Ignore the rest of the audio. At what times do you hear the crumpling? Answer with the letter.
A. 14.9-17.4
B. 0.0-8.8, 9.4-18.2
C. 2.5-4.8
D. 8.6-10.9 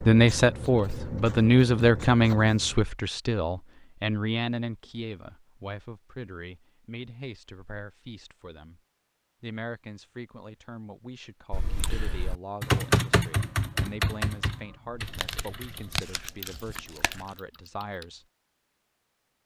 A.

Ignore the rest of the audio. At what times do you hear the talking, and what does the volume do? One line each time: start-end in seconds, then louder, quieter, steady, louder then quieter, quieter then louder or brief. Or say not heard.
0.0-8.8 quieter
9.4-18.2 steady.